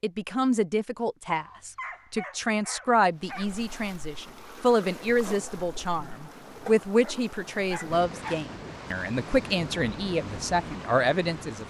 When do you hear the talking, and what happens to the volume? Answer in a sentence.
You can hear the talking from 0.0 to 11.6 s, at a steady volume.